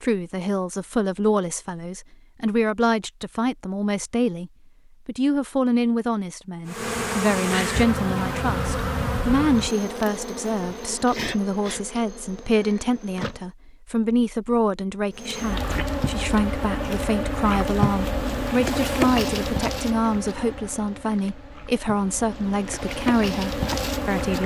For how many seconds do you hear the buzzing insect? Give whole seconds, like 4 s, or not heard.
16 s.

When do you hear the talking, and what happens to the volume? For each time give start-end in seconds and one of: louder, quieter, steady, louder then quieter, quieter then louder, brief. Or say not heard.
0.0-24.4 steady.